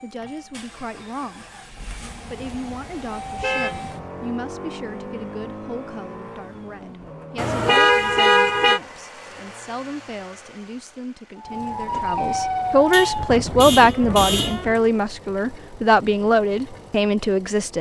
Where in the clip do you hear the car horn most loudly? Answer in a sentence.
The volume of the car horn peaks at 8 seconds.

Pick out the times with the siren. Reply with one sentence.
You can hear the siren from 11.3 to 14.9 s.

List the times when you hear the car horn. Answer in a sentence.
The car horn can be heard from 2.4 to 4.1 s, from 7.3 to 8.8 s and from 12.9 to 14.7 s.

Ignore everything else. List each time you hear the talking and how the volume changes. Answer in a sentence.
You can hear the talking briefly from 0.0 to 1.5 s; and from 2.2 to 17.7 s, getting louder.